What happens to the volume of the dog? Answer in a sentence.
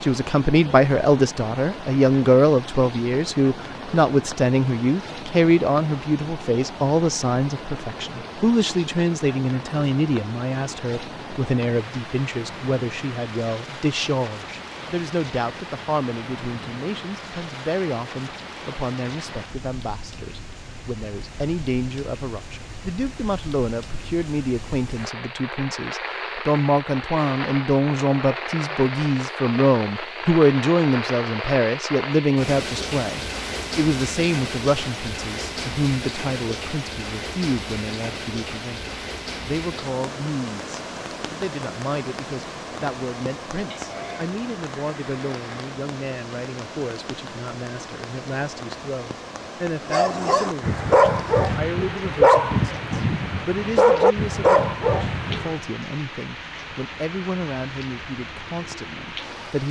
The loudness of the dog stays about the same.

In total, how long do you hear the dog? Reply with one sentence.
You can hear the dog for 6 seconds altogether.